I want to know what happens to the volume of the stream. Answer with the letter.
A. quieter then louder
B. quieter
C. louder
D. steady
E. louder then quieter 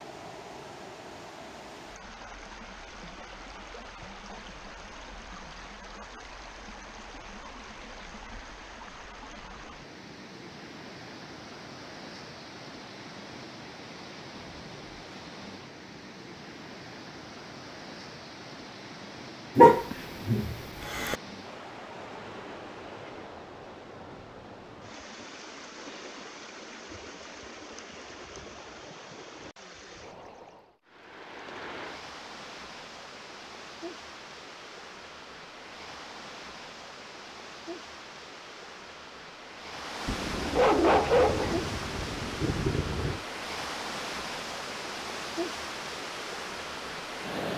C.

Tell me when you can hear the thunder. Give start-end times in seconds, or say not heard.
40.0-43.2.